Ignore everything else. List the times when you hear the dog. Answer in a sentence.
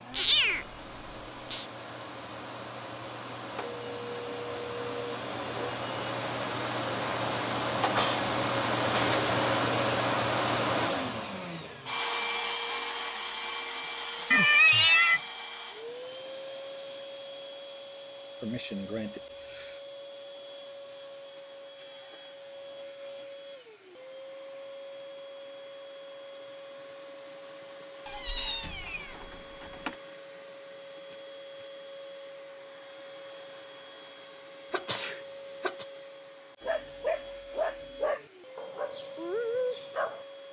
The dog can be heard from 36.6 to 40.2 s.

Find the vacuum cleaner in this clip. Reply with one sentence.
You can hear the vacuum cleaner from 0.0 to 40.4 s.